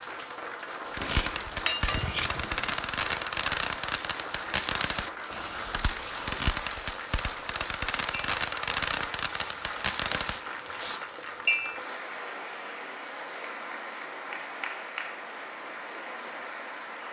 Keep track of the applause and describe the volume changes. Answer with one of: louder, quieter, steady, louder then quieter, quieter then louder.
steady.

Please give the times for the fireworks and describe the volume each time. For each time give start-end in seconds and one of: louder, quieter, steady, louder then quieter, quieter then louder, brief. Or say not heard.
0.8-11.1 steady.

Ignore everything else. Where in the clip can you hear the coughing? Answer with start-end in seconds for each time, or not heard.
not heard.